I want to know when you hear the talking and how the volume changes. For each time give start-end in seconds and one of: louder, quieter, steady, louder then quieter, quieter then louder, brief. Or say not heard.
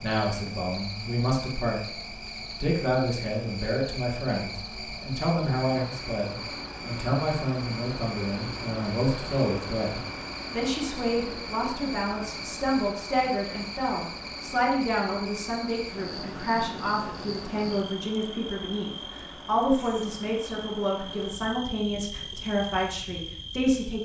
0.0-1.9 brief
2.6-24.0 steady.